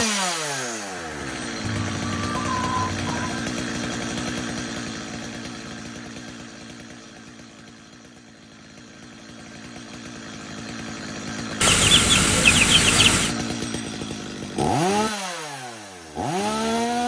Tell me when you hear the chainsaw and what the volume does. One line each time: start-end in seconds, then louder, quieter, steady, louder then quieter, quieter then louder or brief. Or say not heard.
0.0-17.0 quieter then louder.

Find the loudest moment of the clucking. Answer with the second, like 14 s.
13 s.